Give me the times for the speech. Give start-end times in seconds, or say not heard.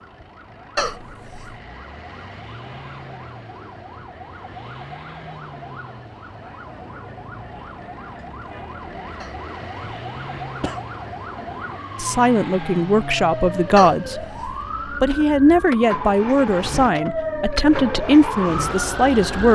12.0-14.2, 14.9-19.5.